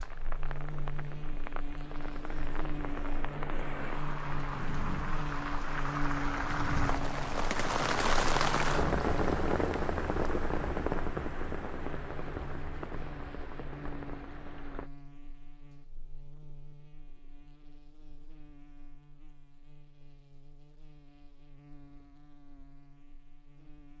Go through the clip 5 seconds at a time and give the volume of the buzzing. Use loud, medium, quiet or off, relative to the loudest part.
loud, loud, medium, quiet, quiet.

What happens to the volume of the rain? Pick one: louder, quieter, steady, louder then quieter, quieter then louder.
louder then quieter.